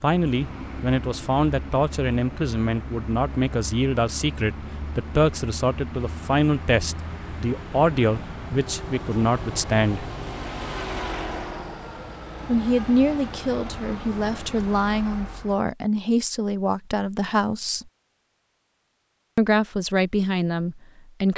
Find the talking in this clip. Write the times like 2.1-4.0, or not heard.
0.0-10.1, 12.4-17.9, 19.4-21.3.